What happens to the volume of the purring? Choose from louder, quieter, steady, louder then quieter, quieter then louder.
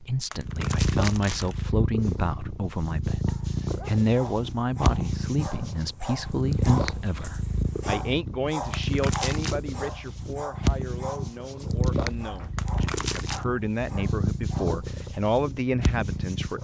steady.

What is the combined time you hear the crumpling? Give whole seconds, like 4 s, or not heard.
3 s.